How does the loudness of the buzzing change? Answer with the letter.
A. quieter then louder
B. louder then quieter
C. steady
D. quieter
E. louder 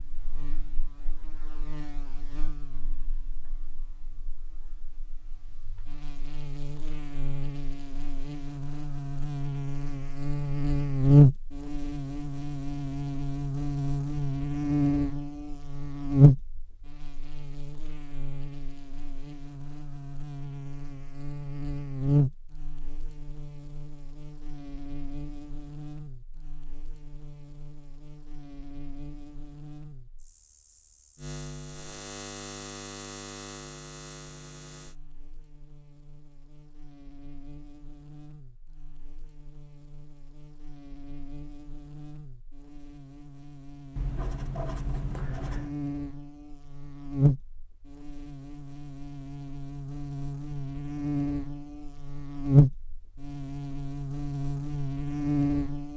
A.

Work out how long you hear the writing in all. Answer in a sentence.
You can hear the writing for 2 seconds altogether.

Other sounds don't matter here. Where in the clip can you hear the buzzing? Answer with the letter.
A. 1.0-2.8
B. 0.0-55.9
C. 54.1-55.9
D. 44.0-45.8
B.